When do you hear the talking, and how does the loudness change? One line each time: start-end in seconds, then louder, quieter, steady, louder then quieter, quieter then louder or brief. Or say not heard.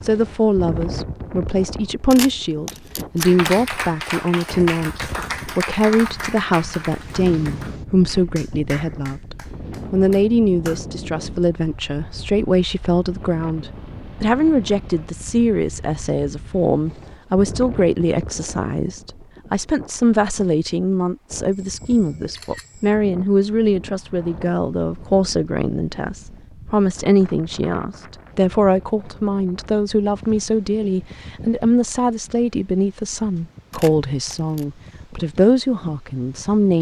0.0-36.7 steady.